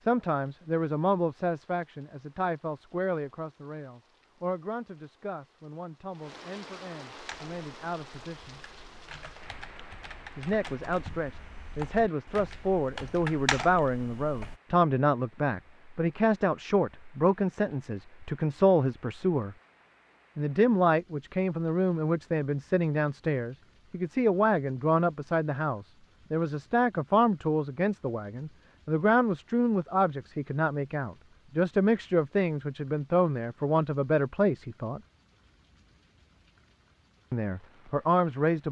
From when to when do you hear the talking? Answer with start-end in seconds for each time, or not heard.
0.1-8.6, 10.3-19.6, 20.4-35.0, 37.3-38.6.